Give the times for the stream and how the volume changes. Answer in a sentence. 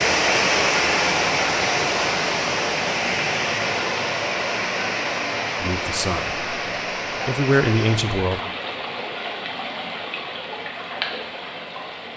The stream can be heard from 0.0 to 12.1 s, getting quieter.